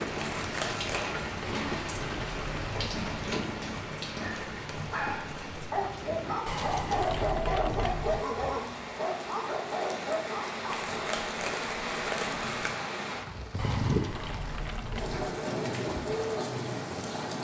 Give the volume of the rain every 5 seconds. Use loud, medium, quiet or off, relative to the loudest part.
loud, medium, loud, loud.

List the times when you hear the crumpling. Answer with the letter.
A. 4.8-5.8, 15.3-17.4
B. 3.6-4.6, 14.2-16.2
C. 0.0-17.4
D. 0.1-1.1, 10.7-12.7
D.